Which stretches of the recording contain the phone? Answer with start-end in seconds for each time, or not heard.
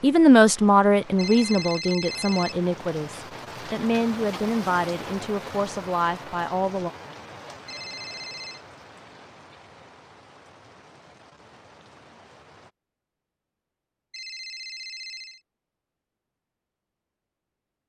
1.1-2.5, 7.7-8.6, 14.1-15.4.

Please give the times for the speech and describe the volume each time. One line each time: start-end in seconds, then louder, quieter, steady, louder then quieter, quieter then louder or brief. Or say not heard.
0.0-6.9 quieter.